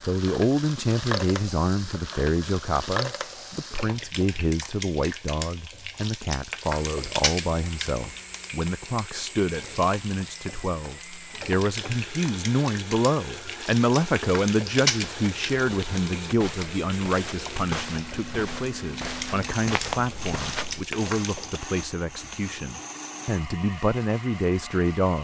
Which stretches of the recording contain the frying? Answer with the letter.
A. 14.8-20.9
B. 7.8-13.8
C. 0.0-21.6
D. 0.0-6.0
C.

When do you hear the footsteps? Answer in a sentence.
You can hear the footsteps from 14.8 to 20.9 s.